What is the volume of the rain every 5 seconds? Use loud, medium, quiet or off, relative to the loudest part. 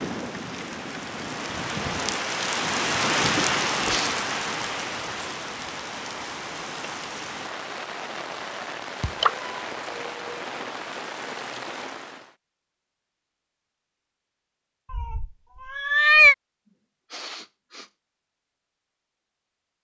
loud, medium, medium, off.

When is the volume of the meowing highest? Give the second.
16 s.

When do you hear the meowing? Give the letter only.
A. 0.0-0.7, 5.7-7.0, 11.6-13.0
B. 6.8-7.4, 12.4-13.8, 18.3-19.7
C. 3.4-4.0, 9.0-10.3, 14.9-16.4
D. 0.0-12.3
C.